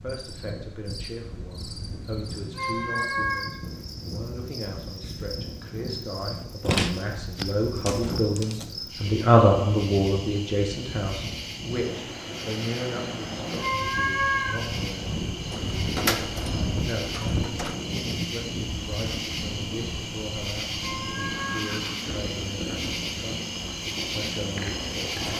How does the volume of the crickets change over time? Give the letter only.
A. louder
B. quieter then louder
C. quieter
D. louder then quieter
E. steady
A.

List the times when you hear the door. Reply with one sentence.
The door can be heard from 6.6 to 8.7 s and from 15.3 to 17.8 s.